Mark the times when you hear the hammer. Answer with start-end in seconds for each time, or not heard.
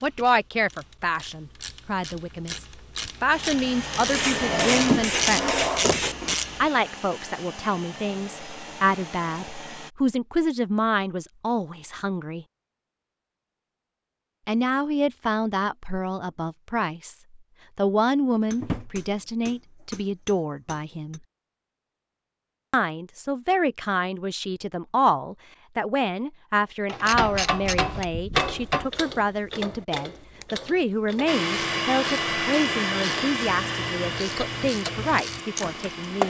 4.1-6.2, 18.5-21.2, 27.1-28.9.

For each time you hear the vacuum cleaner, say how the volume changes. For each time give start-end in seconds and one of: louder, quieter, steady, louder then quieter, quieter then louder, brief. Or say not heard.
3.3-9.9 quieter
31.2-36.2 quieter.